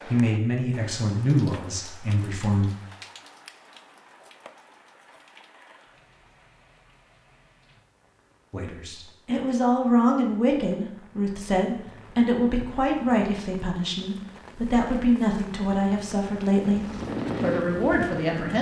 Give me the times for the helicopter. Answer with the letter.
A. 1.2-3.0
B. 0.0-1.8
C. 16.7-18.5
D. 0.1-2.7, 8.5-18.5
C.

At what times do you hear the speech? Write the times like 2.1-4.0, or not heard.
0.1-2.7, 8.5-18.5.